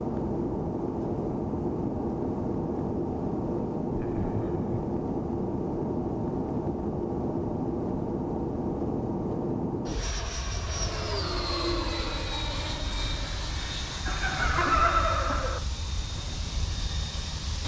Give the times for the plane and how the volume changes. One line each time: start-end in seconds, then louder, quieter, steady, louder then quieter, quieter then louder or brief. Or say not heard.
0.0-17.6 quieter.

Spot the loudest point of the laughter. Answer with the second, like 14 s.
15 s.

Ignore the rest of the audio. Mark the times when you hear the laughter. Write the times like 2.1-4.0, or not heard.
3.9-4.9, 14.1-15.6.